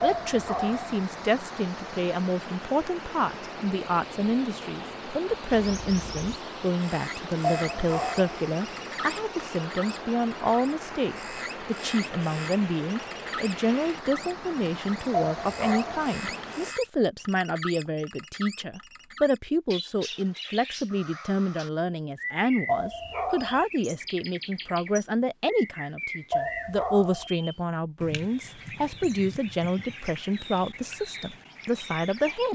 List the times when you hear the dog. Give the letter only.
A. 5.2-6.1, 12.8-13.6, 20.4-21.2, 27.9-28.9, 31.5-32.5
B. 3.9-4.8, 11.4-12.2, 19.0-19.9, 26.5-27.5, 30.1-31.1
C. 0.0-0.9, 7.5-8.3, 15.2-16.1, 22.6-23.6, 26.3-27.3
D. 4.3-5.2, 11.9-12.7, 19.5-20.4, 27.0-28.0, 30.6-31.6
C.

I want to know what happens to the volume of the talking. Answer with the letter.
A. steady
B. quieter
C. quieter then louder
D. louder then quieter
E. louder
A.